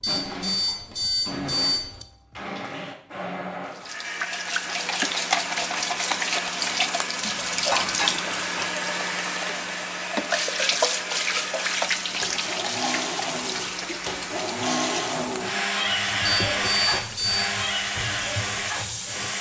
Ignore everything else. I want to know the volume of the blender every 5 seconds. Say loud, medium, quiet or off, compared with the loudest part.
medium, medium, medium, loud.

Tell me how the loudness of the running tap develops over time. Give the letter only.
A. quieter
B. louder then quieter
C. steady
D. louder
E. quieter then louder
A.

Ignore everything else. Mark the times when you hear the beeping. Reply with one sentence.
The beeping can be heard from 0.0 to 2.0 s and from 16.2 to 17.5 s.